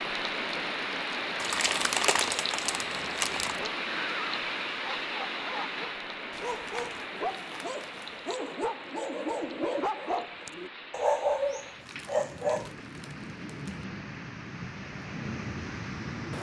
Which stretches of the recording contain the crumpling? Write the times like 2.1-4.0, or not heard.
1.4-3.6, 6.5-8.2, 11.8-13.8.